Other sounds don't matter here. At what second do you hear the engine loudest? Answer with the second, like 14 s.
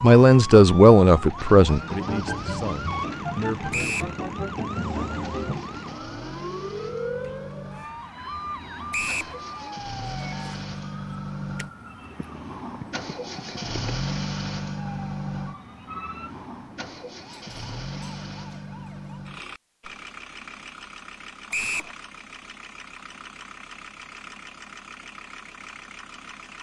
14 s.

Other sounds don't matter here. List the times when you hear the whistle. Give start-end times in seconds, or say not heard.
3.7-4.2, 8.9-9.3, 21.5-21.9.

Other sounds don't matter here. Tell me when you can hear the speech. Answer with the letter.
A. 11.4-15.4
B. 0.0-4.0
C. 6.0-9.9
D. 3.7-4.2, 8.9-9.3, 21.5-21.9
B.